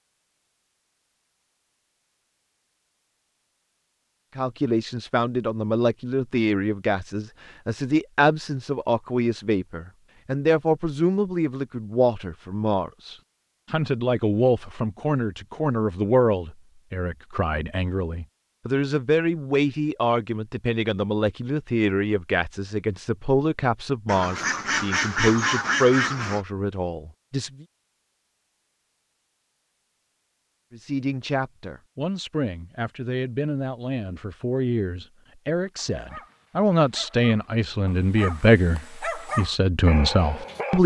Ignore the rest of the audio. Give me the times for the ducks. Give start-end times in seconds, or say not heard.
24.1-26.4.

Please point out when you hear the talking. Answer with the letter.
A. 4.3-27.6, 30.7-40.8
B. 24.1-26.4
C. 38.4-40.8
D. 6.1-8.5
A.